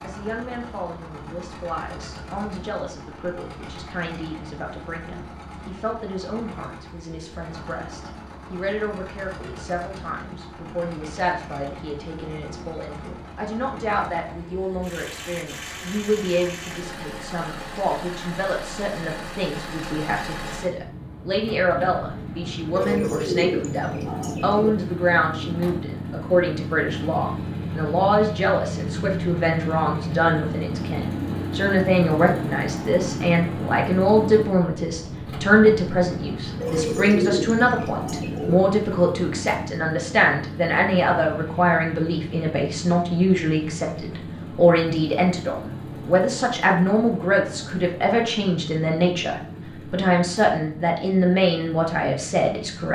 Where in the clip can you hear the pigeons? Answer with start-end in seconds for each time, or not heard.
22.8-24.7, 36.6-38.6.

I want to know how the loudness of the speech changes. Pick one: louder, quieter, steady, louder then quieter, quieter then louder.
louder.